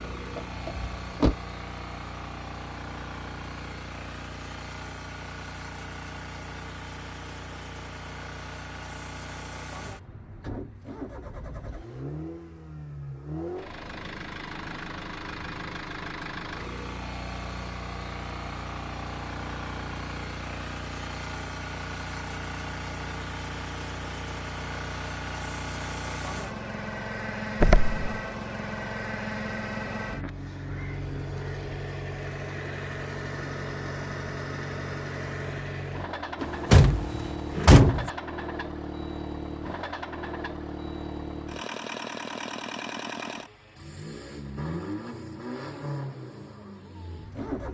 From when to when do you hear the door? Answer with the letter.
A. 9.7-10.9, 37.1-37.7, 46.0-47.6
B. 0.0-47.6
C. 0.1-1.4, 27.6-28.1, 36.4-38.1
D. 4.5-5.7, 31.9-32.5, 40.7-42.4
C.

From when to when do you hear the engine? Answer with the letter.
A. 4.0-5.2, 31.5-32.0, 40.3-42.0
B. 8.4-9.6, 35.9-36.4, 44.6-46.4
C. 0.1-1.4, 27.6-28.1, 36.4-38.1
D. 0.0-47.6
D.